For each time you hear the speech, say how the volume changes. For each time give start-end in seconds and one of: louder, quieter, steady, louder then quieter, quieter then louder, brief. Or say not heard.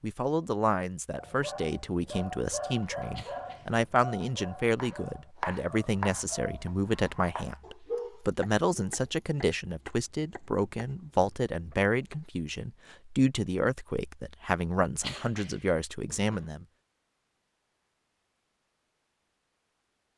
0.0-16.6 steady.